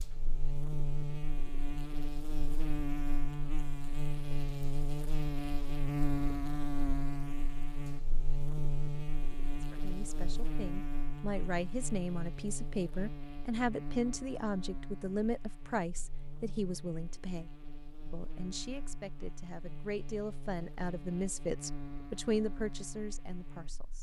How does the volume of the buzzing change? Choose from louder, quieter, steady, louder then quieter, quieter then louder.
quieter.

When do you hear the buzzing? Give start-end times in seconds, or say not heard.
0.0-23.9.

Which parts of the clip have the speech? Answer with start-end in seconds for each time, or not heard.
9.4-23.9.